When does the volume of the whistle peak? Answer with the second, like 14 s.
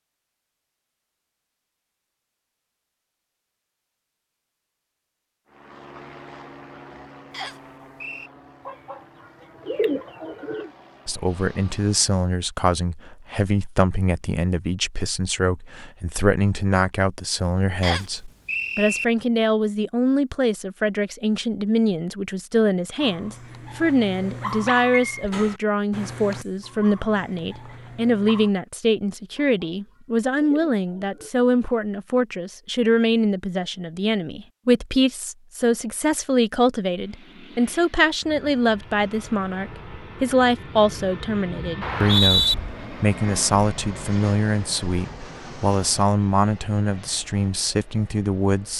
42 s.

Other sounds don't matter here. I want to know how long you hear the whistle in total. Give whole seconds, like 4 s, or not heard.
3 s.